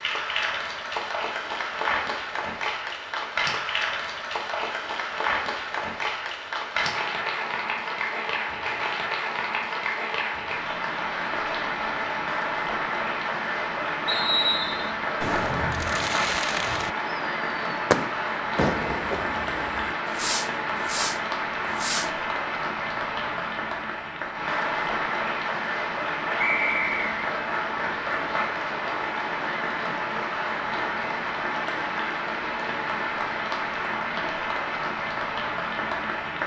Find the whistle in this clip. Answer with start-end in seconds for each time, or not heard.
14.1-14.9, 26.4-27.1.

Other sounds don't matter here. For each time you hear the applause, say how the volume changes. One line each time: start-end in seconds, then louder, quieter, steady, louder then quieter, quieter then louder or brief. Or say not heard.
0.0-36.4 steady.